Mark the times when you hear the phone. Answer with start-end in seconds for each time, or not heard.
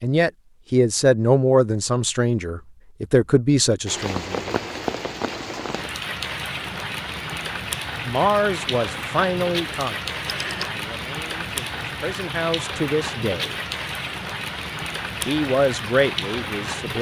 10.2-10.8.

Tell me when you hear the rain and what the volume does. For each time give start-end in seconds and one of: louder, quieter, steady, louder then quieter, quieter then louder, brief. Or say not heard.
3.9-16.9 steady.